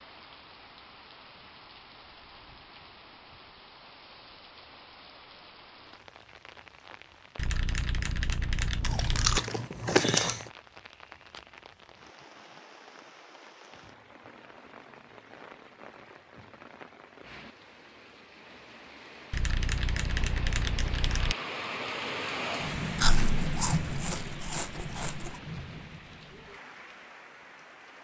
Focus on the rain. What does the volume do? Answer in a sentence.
The loudness of the rain goes up.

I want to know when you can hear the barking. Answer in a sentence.
You can't hear the barking here.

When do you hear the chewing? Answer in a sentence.
The chewing can be heard from 8.8 to 10.4 s and from 22.9 to 25.4 s.